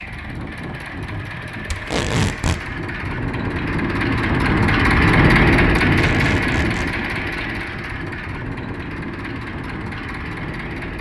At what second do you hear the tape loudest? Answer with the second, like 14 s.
2 s.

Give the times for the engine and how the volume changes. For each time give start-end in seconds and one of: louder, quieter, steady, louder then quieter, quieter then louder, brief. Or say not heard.
0.0-10.9 louder then quieter.